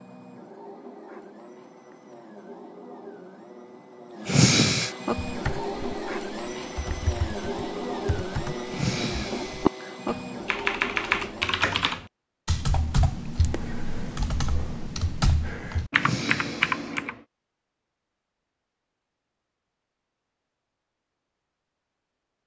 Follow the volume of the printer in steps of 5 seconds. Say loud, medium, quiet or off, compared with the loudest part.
medium, loud, loud, off, off.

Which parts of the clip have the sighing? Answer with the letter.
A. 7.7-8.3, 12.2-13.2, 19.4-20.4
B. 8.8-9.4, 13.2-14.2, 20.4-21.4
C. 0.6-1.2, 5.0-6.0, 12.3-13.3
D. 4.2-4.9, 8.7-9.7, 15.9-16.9
D.